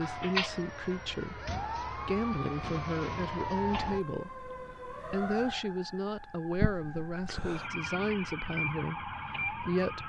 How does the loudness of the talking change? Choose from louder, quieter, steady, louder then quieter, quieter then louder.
steady.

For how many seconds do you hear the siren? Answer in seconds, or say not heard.
10 s.